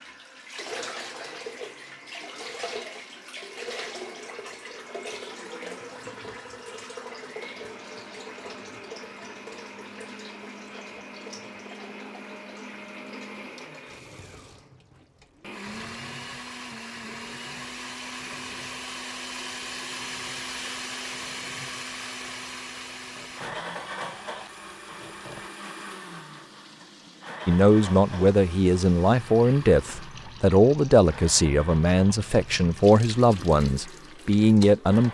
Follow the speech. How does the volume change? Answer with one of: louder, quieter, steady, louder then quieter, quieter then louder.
steady.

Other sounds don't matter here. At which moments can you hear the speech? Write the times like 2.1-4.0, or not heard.
27.4-35.0.